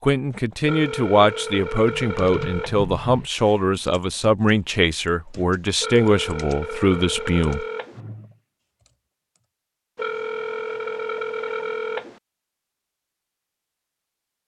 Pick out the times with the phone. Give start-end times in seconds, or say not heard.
0.7-2.9, 5.8-8.0, 9.9-12.2.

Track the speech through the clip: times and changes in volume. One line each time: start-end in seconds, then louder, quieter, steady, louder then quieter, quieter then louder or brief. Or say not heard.
0.0-7.7 steady.